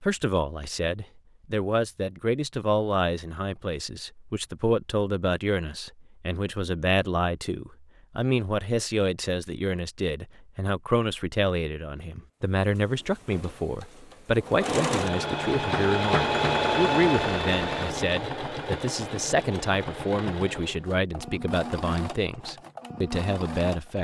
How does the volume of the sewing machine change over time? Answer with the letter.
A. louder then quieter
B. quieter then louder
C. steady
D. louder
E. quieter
A.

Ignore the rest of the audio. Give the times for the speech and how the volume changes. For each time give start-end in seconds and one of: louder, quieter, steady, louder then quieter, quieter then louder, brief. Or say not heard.
0.0-23.9 steady.